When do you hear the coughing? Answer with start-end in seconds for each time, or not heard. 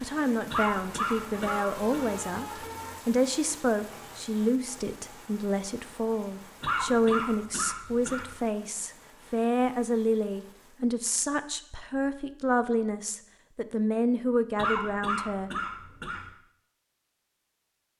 0.5-2.0, 6.6-8.3, 14.6-16.3.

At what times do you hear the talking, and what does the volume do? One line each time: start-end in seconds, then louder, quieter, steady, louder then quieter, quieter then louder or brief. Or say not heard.
0.0-15.5 steady.